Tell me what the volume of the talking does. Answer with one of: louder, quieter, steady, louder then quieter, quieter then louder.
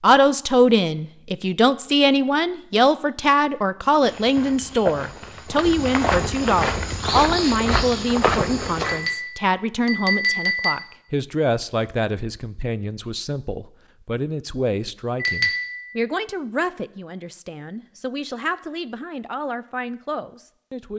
quieter.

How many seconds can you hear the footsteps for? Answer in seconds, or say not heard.
5 s.